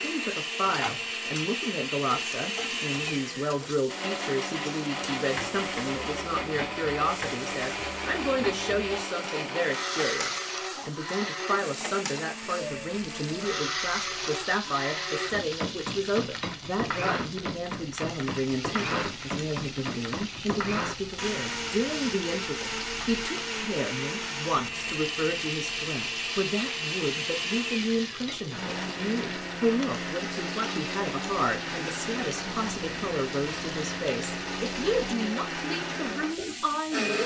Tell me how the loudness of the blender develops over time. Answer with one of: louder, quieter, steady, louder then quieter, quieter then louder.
steady.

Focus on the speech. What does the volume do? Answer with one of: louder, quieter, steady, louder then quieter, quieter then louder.
steady.